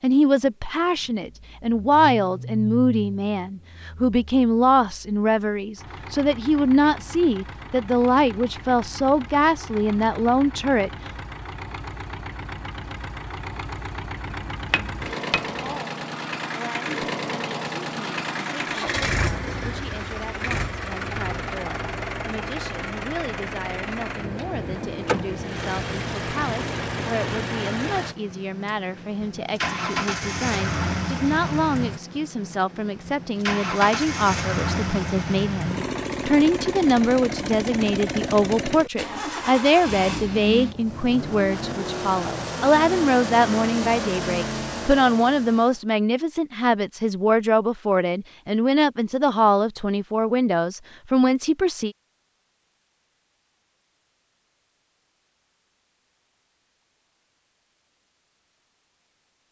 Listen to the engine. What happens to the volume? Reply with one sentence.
The loudness of the engine goes up.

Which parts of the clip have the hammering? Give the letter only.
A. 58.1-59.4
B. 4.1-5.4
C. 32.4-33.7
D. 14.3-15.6
D.